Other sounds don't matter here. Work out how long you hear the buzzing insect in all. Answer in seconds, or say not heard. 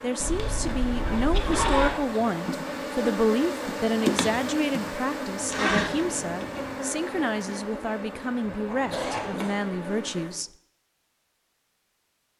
10 s.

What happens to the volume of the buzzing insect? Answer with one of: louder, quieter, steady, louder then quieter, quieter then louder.
louder then quieter.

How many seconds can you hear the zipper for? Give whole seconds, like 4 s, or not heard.
4 s.